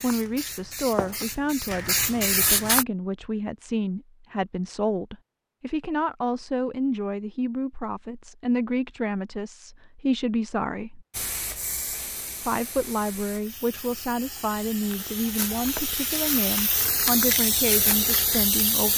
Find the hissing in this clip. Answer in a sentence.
You can hear the hissing from 0.0 to 2.9 s and from 11.1 to 18.9 s.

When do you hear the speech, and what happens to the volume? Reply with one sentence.
The speech can be heard from 0.0 to 11.1 s, at a steady volume; and from 12.4 to 18.9 s, at a steady volume.